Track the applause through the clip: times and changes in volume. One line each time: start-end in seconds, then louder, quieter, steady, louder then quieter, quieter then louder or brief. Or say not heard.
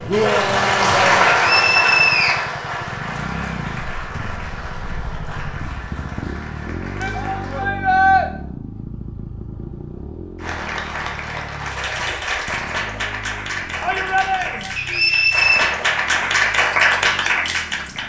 0.0-7.7 quieter
10.4-18.0 louder.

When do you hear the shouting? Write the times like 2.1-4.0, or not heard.
0.1-1.4, 7.0-8.2, 13.8-14.7.